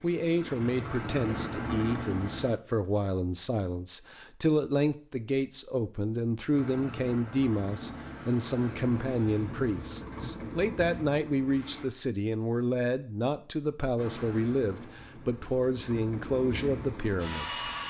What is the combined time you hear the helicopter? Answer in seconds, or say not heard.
12 s.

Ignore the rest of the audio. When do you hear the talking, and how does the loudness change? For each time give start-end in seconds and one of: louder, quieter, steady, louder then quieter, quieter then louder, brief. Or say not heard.
0.0-17.6 steady.